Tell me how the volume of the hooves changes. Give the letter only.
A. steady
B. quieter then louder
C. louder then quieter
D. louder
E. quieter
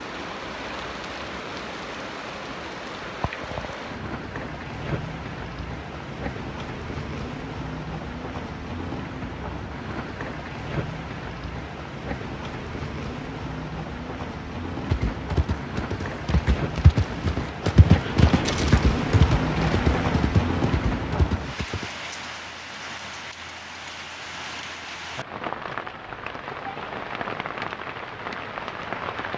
C.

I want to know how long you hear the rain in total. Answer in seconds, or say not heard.
29 s.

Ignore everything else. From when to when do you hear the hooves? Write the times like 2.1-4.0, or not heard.
14.8-21.9.